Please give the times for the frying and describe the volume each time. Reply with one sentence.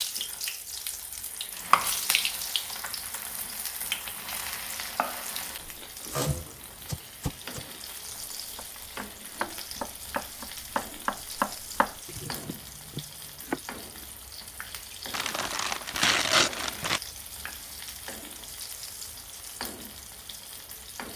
You can hear the frying from 0.0 to 21.1 s, getting quieter.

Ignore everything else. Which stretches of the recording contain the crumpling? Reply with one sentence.
The crumpling can be heard from 15.1 to 17.0 s.